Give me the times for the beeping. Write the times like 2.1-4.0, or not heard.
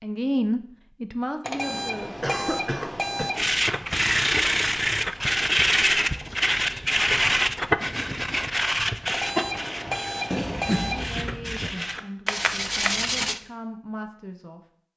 1.4-3.5, 9.1-11.1.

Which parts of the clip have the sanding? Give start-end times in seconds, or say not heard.
3.4-13.4.